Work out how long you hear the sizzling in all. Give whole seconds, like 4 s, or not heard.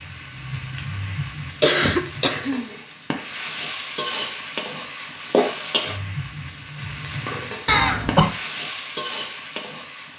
10 s.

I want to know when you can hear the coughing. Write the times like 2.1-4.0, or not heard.
1.6-2.7, 7.7-8.3.